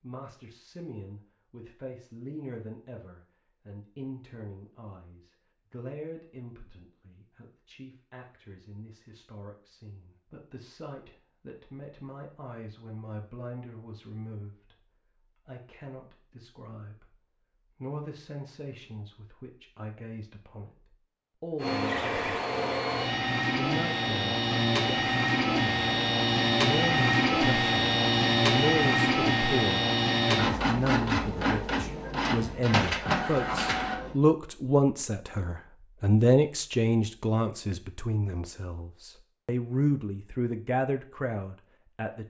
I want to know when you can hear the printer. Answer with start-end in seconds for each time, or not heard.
21.6-34.1.